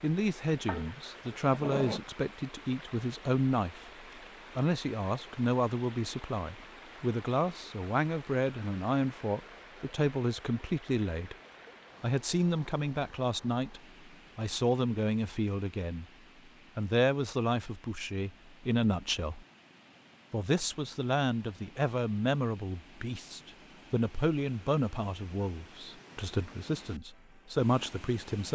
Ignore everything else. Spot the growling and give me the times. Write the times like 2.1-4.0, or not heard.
0.7-2.0.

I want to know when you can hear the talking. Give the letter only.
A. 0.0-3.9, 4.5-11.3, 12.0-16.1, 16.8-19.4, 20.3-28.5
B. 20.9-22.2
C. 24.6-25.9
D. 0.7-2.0
A.